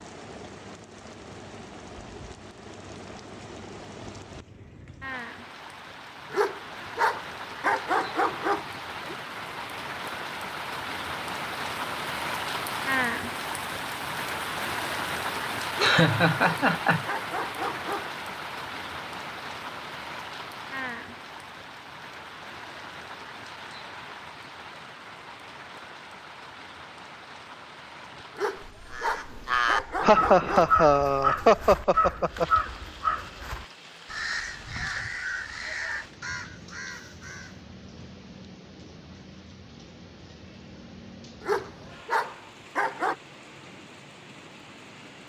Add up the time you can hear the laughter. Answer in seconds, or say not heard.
4 s.